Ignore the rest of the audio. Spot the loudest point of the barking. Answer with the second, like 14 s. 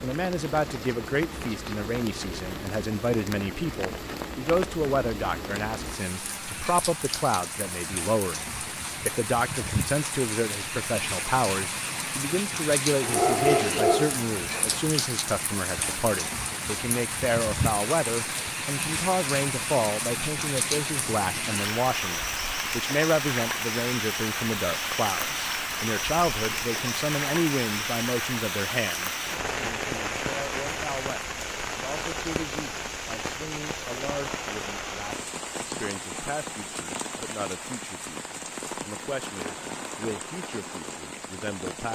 13 s.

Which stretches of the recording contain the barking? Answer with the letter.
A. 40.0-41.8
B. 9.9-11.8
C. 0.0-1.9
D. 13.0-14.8
D.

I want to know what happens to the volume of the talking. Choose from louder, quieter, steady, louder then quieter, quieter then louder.
quieter.